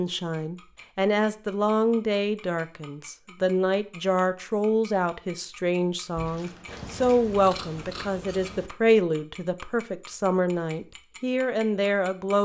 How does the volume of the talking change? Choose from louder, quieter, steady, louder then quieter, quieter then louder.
steady.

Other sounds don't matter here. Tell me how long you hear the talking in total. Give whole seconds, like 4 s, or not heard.
12 s.